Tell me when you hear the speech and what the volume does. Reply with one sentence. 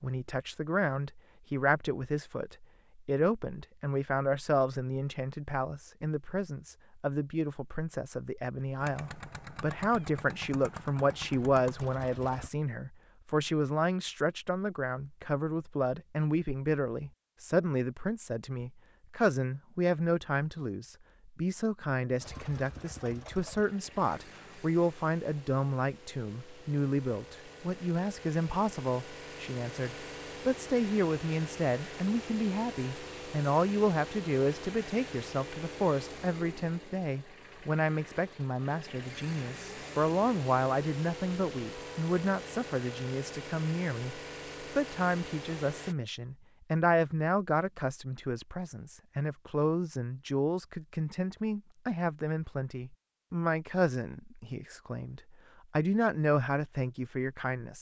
You can hear the speech from 0.0 to 57.7 s, at a steady volume.